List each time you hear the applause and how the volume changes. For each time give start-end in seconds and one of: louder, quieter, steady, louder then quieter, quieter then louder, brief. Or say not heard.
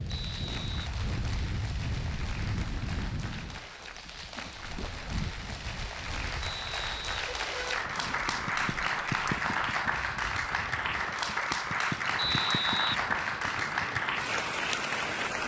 0.0-15.4 louder.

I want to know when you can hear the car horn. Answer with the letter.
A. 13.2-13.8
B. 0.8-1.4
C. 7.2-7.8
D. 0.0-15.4
C.